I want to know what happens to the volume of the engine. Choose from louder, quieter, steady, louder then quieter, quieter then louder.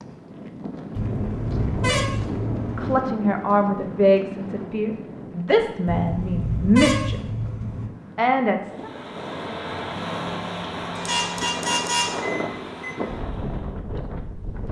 quieter.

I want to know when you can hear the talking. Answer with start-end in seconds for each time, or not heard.
2.8-7.2, 8.2-8.9.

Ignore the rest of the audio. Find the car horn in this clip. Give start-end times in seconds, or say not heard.
0.9-3.0, 5.8-7.9, 10.9-12.9.